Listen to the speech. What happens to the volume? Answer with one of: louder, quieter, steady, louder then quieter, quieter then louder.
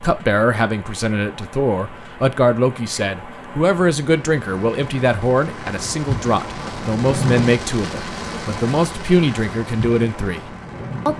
steady.